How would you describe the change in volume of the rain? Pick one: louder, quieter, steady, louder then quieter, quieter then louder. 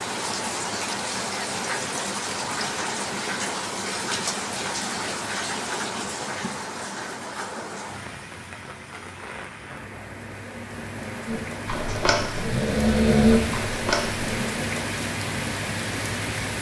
quieter then louder.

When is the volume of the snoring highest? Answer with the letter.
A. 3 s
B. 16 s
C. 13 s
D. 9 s
C.